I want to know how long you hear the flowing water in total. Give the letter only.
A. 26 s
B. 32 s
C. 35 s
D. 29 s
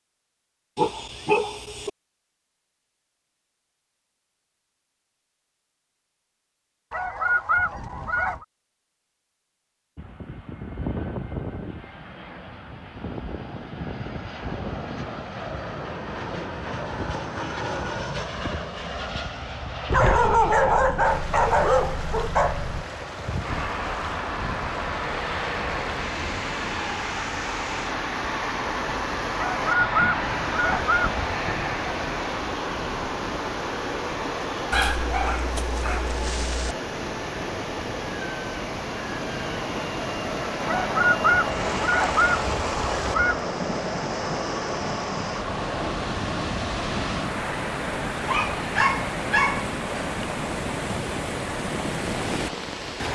B.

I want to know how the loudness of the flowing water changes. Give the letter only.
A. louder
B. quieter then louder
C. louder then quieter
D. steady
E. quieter
A.